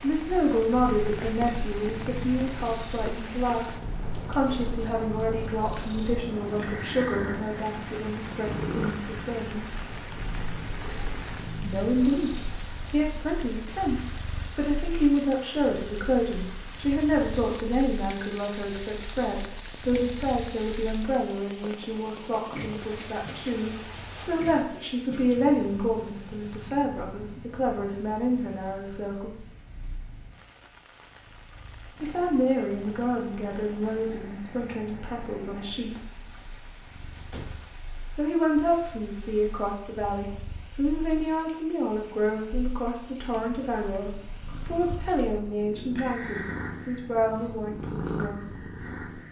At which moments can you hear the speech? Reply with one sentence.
You can hear the speech from 0.0 to 9.8 s, from 11.6 to 12.3 s, from 12.9 to 29.4 s, from 32.0 to 36.0 s and from 38.1 to 48.5 s.